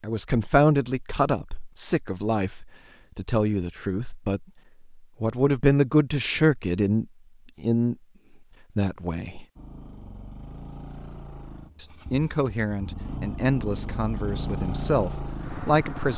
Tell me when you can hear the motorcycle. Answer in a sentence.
The motorcycle can be heard from 9.6 to 16.1 s.